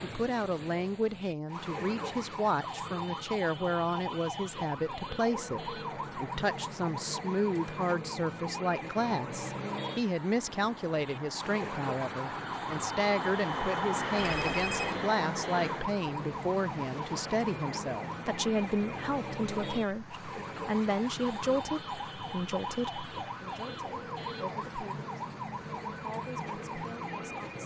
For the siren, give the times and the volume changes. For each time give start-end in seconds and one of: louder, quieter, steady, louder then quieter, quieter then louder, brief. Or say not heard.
0.0-27.6 steady.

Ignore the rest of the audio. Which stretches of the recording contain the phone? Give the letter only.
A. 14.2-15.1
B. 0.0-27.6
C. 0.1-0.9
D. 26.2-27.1
A.